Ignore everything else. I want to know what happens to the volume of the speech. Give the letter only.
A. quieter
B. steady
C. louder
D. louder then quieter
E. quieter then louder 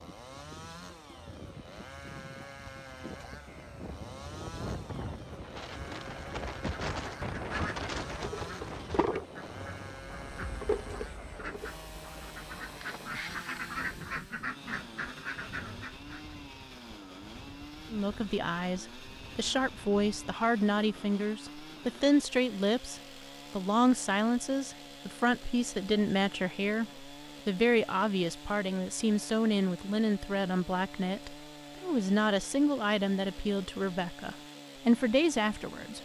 B.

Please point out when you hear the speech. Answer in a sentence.
You can hear the speech from 17.9 to 36.0 s.